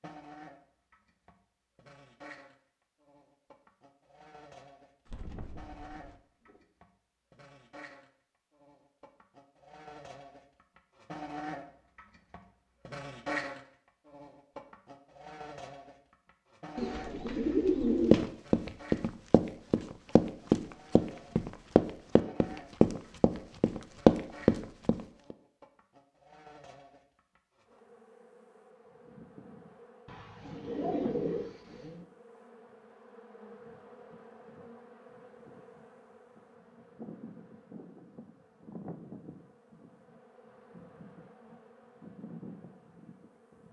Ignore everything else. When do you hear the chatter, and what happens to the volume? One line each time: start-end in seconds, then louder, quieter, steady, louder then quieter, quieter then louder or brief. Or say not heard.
not heard.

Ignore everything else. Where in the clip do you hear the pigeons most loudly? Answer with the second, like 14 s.
18 s.